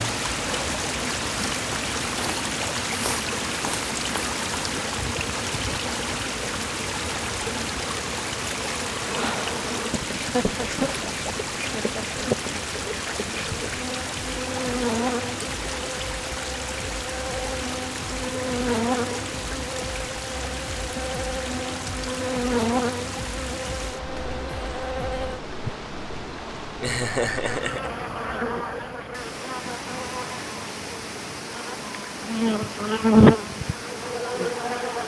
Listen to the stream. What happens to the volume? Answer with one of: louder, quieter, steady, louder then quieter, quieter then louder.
quieter.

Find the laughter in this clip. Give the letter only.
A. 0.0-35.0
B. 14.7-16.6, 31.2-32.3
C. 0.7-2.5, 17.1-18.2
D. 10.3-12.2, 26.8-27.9
D.